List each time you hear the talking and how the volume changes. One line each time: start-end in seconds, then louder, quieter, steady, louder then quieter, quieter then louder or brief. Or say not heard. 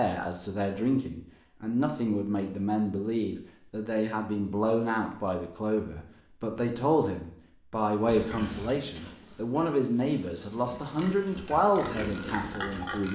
0.0-13.1 steady.